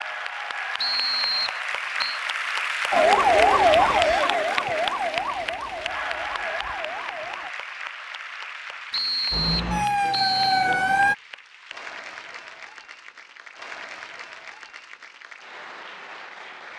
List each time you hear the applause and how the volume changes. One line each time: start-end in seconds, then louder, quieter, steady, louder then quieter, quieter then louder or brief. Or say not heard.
0.0-16.7 quieter.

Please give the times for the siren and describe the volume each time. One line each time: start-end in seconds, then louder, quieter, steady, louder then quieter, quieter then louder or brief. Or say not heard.
2.9-7.5 quieter
9.3-11.2 brief.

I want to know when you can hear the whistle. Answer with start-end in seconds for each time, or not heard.
0.8-2.2, 8.9-10.7.